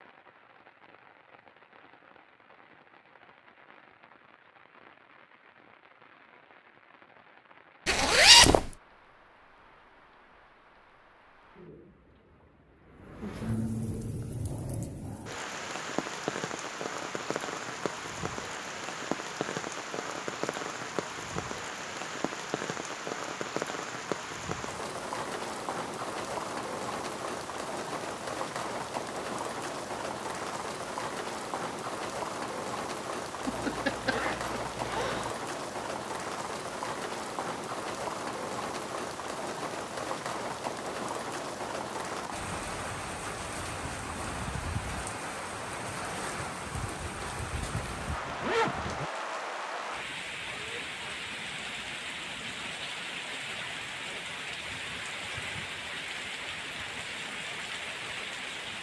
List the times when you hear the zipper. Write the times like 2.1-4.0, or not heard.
7.8-8.7, 33.5-35.4, 47.2-49.1.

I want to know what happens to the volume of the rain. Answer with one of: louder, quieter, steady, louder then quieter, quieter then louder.
louder.